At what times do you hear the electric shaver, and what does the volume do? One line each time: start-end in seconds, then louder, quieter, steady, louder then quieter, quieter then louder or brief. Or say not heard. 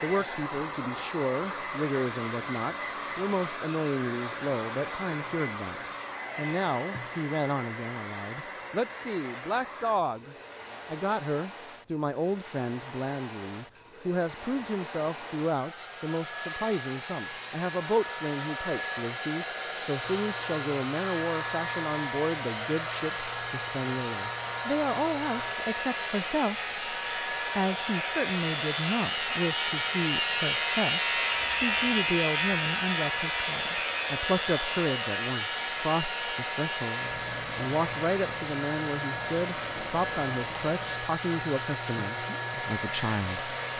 20.0-43.7 louder then quieter.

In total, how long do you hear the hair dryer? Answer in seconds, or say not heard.
44 s.